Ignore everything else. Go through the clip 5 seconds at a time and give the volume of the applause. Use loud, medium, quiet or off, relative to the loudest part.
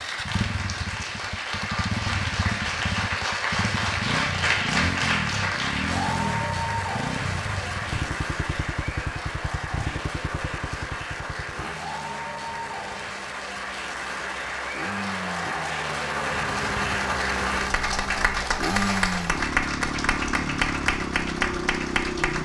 loud, loud, medium, loud, loud.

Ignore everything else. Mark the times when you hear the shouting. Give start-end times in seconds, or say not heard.
not heard.